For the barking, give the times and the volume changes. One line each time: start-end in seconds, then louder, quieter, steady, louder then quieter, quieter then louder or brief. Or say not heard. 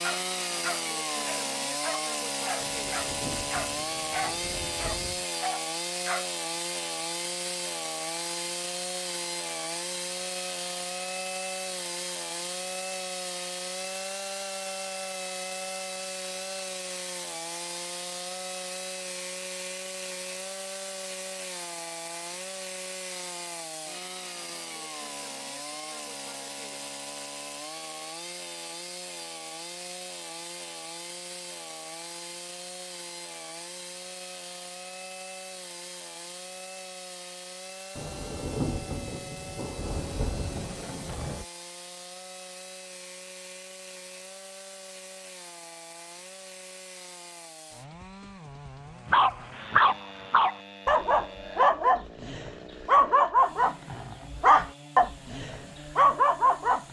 0.0-6.2 steady
49.0-56.8 steady.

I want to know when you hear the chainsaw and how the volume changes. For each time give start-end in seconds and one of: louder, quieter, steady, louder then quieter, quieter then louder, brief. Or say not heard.
0.0-56.8 quieter.